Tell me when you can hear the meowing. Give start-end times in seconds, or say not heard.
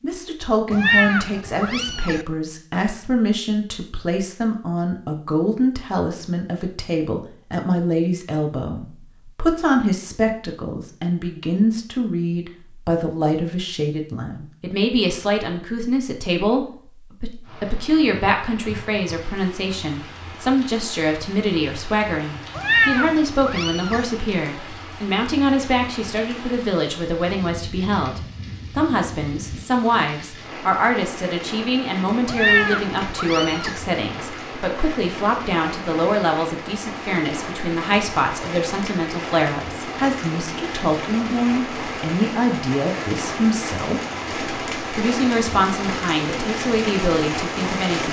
0.7-2.2, 22.6-24.1, 32.2-33.8.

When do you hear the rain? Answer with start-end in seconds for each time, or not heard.
17.4-48.0.